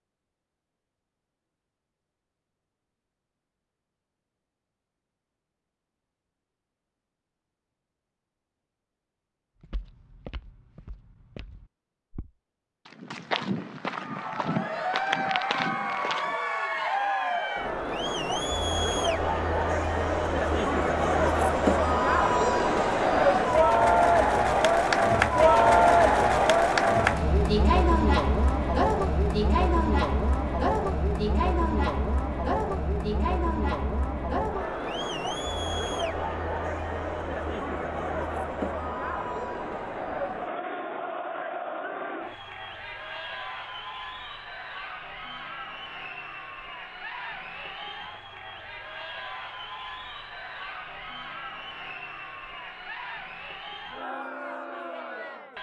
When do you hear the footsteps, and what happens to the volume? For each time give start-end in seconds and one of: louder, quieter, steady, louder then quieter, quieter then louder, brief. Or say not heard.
9.6-16.4 louder.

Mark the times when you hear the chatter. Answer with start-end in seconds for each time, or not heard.
13.9-55.5.